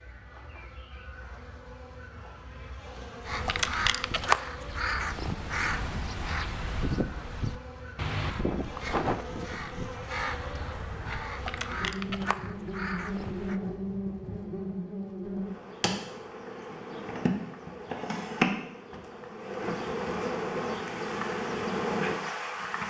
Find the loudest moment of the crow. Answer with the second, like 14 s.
4 s.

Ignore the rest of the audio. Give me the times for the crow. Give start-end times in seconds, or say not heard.
3.2-13.6.